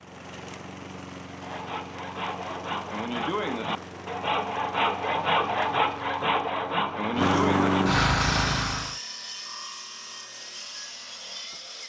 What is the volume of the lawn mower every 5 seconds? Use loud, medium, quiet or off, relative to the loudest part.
quiet, loud, off.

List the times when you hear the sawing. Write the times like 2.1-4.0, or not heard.
1.4-11.8.